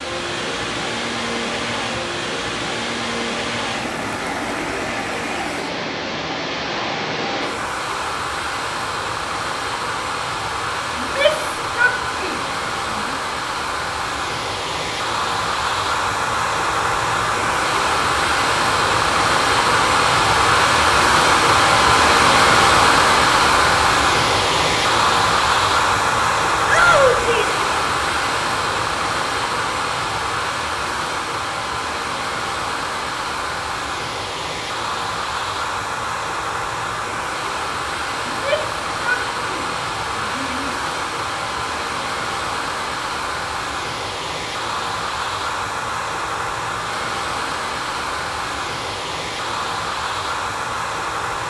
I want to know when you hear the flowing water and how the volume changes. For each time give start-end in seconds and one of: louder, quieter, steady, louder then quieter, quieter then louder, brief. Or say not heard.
0.0-51.4 louder then quieter.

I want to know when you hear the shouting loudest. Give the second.
27 s.